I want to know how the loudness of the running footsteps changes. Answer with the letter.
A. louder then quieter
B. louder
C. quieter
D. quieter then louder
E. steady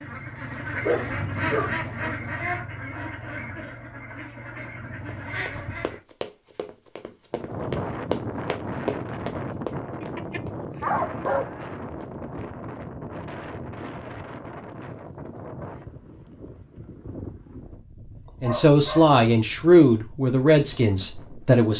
A.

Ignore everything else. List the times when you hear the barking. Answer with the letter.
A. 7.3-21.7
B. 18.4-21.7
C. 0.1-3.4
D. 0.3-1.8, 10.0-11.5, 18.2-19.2
D.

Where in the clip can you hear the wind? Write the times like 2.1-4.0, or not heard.
7.3-21.7.